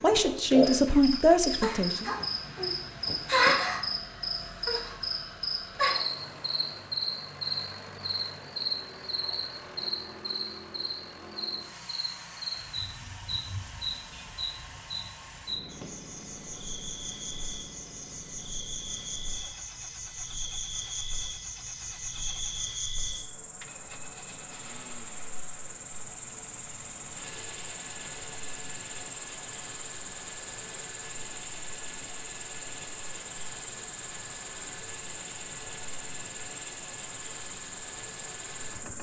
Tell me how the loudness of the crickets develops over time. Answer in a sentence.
The loudness of the crickets goes down.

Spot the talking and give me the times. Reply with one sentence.
You can hear the talking from 0.0 to 2.1 s.